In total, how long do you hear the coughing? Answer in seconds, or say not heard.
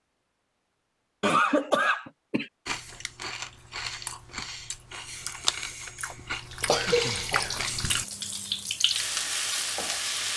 2 s.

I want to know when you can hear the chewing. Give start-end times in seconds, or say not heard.
2.6-8.1.